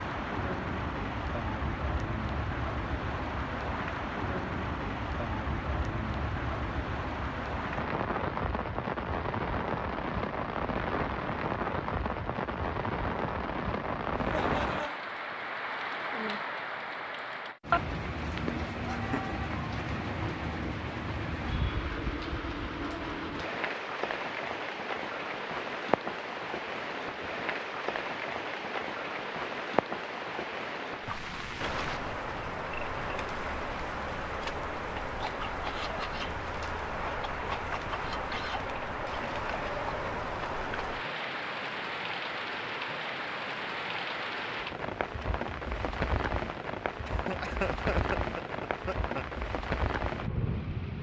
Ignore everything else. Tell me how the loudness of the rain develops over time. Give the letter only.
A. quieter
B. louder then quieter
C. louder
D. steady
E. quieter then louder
D.